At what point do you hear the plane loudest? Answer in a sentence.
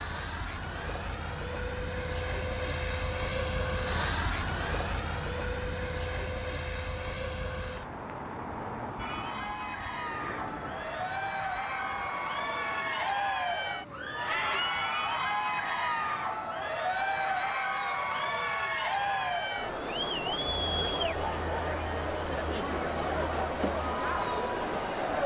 The volume of the plane peaks at 4 seconds.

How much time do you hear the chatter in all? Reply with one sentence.
The chatter can be heard for 16 seconds in total.